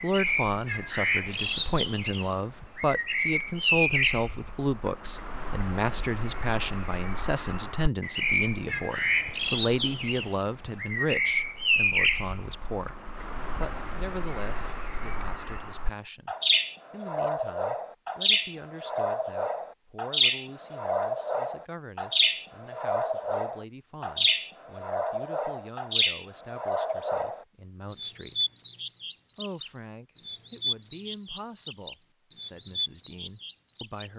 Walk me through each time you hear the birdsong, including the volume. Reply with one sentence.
The birdsong can be heard from 0.0 to 34.1 s, at a steady volume.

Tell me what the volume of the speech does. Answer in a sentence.
The loudness of the speech goes down.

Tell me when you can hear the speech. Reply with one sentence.
You can hear the speech from 0.0 to 28.4 s and from 29.4 to 34.1 s.